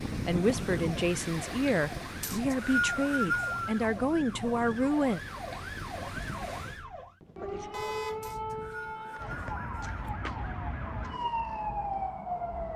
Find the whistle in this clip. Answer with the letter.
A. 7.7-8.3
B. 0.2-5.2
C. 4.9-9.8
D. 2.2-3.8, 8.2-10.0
D.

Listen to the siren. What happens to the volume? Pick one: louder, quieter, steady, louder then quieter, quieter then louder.
louder.